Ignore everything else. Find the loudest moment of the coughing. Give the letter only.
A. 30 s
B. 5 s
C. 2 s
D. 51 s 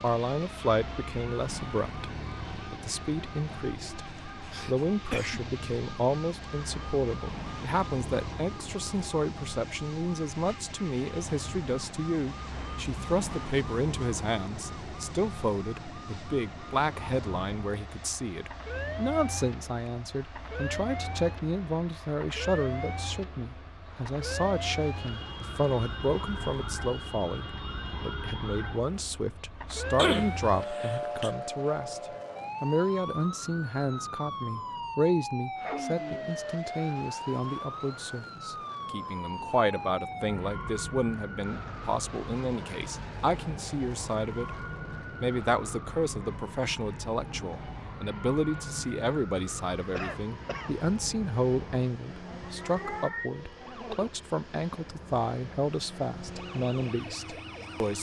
A.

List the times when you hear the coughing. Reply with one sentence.
The coughing can be heard from 3.8 to 5.5 s, from 29.9 to 31.3 s and from 50.0 to 50.8 s.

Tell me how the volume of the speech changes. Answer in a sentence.
The loudness of the speech stays about the same.